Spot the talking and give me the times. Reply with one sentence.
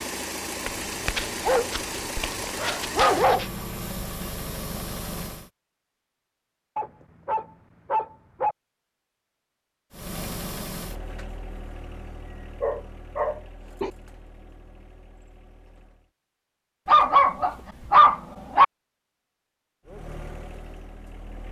The talking can't be heard in this clip.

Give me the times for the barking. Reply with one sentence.
You can hear the barking from 0.7 to 3.5 s, from 6.8 to 8.6 s, from 12.6 to 13.9 s and from 16.9 to 18.6 s.